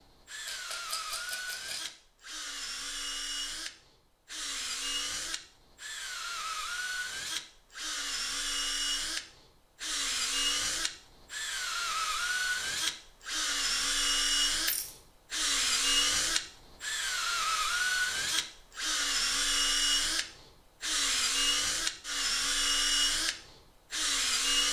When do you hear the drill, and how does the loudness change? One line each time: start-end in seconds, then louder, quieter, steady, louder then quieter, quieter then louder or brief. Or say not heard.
0.0-24.6 louder.